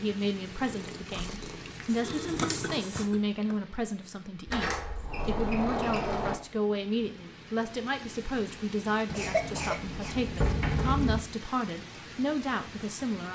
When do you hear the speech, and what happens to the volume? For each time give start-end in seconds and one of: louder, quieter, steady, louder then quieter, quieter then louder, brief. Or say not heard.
0.0-13.3 steady.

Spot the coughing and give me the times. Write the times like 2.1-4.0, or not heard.
2.0-3.5, 9.1-10.2.